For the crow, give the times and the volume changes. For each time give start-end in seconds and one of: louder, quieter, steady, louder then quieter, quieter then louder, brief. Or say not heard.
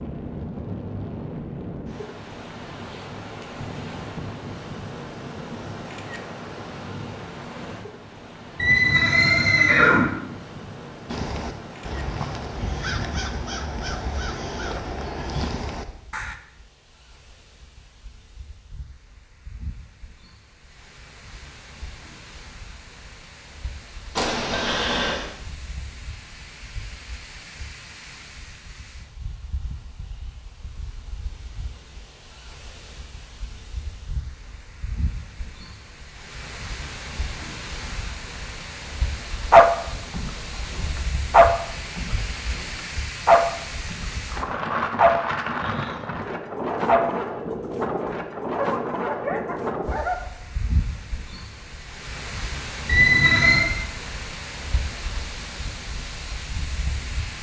11.1-16.4 steady.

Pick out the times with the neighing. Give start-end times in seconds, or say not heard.
8.6-10.1, 24.1-25.2, 52.9-53.8.